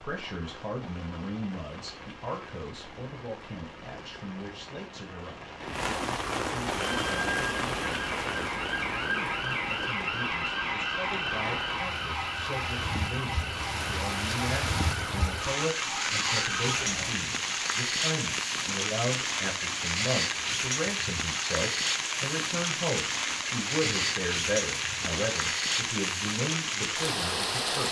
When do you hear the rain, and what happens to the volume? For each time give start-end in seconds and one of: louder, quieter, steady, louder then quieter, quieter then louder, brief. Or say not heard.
0.0-27.8 louder.